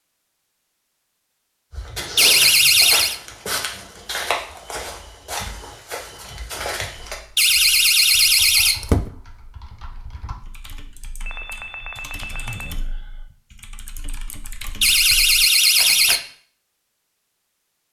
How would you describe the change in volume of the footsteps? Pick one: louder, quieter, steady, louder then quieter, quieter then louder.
quieter.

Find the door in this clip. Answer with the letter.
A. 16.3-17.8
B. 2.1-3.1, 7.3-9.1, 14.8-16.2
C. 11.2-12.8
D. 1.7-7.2
B.